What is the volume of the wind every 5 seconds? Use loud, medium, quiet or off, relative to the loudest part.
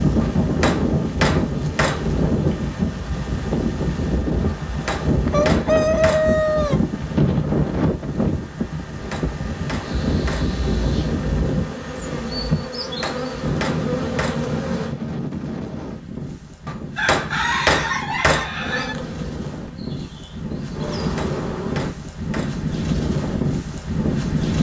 loud, loud, loud, medium, loud.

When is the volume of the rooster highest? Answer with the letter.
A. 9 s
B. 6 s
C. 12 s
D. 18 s
B.